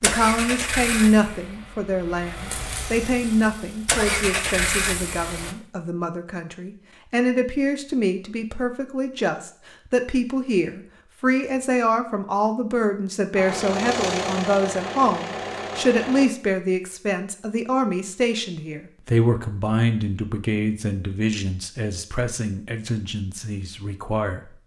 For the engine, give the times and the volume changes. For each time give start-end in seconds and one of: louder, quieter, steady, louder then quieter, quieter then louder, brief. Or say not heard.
0.0-5.5 quieter then louder
13.3-16.2 brief.